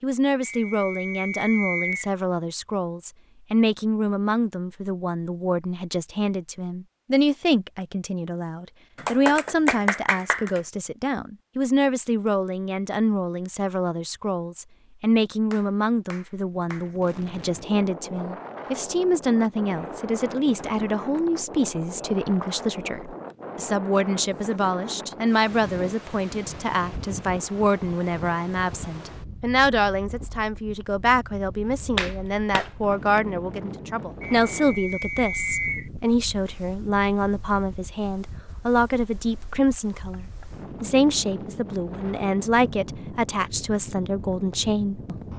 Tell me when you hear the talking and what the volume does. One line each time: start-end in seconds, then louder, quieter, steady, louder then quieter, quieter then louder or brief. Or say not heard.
0.0-45.1 steady.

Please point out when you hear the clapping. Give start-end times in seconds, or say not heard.
8.9-10.6, 15.5-16.9, 31.6-33.2.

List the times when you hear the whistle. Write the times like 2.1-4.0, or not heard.
0.4-2.1, 34.2-35.9.